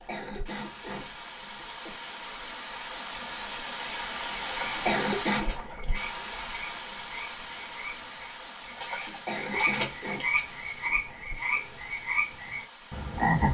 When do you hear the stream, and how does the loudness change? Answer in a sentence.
You can hear the stream from 0.0 to 13.4 s, getting louder then quieter.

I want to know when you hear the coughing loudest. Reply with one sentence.
The volume of the coughing peaks at 5 seconds.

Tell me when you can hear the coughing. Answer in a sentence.
You can hear the coughing from 0.1 to 1.9 s, from 4.8 to 5.5 s and from 9.2 to 10.2 s.